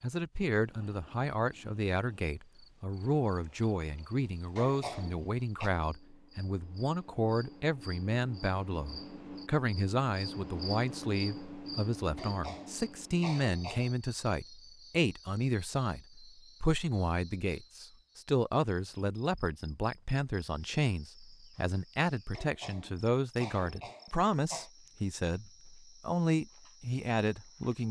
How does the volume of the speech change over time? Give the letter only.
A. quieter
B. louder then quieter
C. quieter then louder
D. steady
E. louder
D.